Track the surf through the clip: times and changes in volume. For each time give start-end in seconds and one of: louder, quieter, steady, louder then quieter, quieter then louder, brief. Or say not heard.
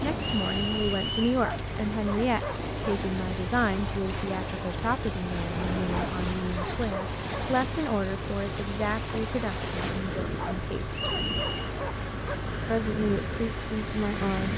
0.0-14.5 steady.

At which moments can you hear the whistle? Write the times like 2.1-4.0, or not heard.
0.2-1.4, 10.9-11.7.